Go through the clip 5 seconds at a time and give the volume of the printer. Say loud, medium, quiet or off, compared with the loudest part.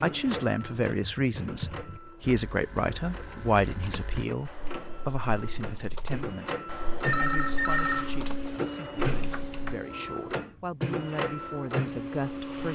medium, loud, loud.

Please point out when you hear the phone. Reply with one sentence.
You can hear the phone from 3.2 to 4.7 s and from 7.0 to 8.1 s.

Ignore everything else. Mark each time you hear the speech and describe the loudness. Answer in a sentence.
You can hear the speech from 0.0 to 12.7 s, getting quieter then louder.